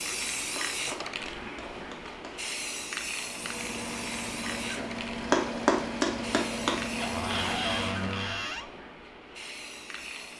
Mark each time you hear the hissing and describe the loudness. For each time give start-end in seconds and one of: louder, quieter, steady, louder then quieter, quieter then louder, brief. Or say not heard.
0.0-10.3 quieter.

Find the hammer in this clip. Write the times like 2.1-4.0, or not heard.
0.6-2.3, 5.3-6.8.